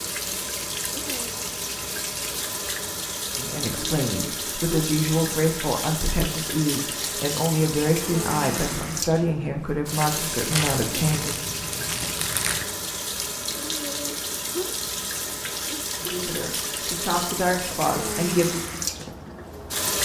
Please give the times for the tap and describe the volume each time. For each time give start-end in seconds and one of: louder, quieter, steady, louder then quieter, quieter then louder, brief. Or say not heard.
0.0-19.9 steady.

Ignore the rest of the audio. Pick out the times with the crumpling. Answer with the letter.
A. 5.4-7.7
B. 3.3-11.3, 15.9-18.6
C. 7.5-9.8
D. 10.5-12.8
D.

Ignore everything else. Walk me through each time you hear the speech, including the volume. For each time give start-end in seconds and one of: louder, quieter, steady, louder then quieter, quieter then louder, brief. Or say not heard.
3.3-11.3 steady
15.9-18.6 brief.